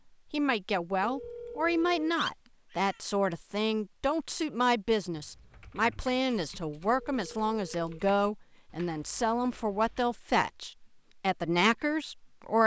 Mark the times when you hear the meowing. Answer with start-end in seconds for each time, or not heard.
2.1-3.0.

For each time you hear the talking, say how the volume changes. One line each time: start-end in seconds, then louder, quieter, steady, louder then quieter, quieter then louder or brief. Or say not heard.
0.3-12.6 steady.